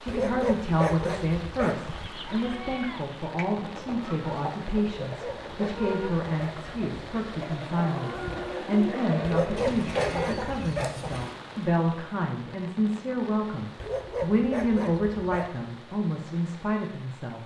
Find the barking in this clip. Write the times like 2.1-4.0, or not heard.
0.1-2.1, 4.8-6.7, 9.2-11.2, 13.8-15.7.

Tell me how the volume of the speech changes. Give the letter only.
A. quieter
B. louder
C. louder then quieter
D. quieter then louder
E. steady
E.